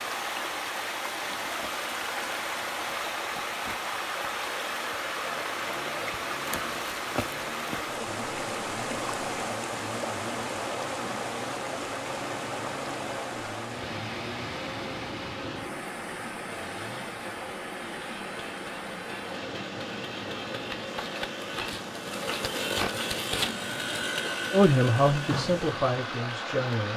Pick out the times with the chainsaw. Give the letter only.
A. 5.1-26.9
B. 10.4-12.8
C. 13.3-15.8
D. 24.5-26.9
A.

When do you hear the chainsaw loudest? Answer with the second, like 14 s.
23 s.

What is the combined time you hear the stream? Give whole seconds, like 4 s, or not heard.
27 s.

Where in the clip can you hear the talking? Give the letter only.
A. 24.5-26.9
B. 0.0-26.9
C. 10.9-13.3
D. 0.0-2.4
A.